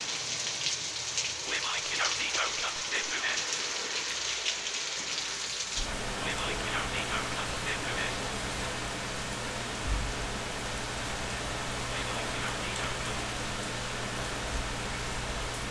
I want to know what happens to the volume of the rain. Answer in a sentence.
The loudness of the rain stays about the same.